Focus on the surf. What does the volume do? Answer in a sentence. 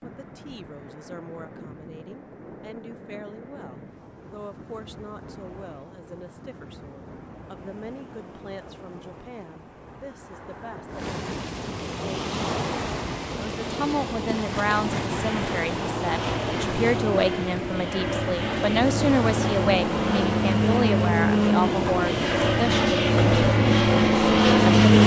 The loudness of the surf goes up.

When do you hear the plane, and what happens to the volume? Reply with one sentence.
You can hear the plane from 13.6 to 25.0 s, getting louder.